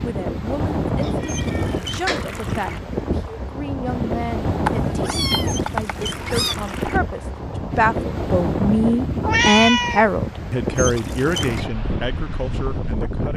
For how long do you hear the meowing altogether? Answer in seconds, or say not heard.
4 s.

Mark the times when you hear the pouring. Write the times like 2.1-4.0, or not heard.
1.2-2.8, 5.5-7.0, 10.8-11.7.